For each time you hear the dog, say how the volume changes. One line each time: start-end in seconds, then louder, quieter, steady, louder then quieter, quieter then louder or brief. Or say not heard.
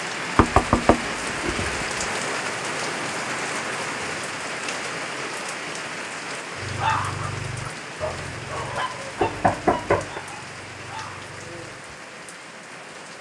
6.5-11.9 quieter.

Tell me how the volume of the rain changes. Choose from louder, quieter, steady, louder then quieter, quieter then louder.
quieter.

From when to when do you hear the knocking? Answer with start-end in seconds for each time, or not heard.
0.3-2.0, 9.2-10.2.